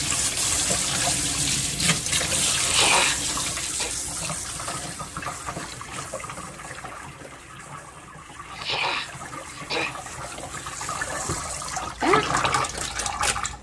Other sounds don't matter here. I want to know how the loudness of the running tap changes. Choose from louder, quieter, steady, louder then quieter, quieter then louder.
quieter then louder.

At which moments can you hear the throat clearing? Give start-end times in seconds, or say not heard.
2.5-3.9, 8.5-10.1.